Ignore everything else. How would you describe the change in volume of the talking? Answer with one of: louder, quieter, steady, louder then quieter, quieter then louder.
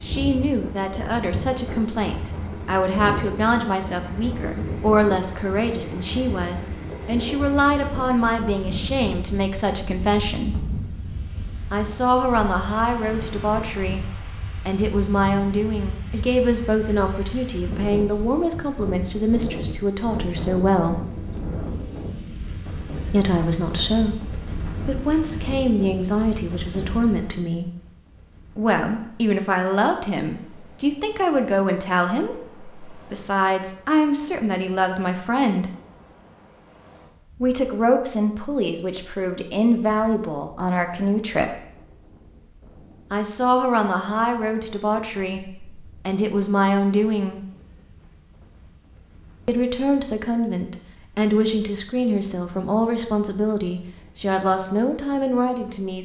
steady.